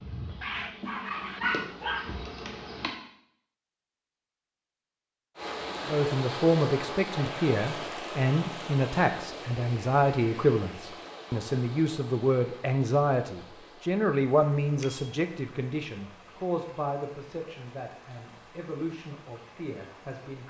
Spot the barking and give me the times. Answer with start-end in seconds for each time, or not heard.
0.4-2.1.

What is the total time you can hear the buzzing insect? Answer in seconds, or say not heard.
3 s.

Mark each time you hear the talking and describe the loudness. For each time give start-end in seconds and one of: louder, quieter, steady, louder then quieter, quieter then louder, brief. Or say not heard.
5.8-20.4 quieter.